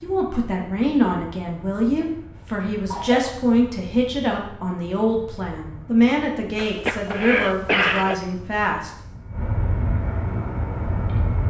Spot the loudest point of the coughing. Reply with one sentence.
The volume of the coughing peaks at 8 seconds.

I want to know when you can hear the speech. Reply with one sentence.
You can hear the speech from 0.0 to 8.9 s.